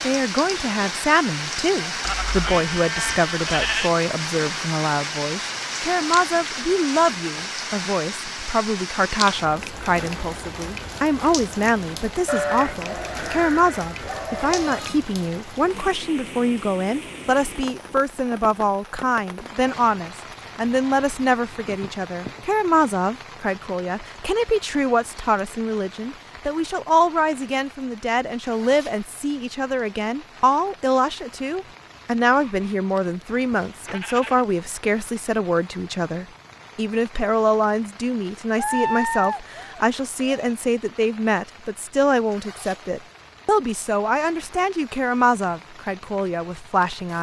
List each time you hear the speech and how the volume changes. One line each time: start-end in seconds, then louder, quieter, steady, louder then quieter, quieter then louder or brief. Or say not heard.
0.0-47.1 steady.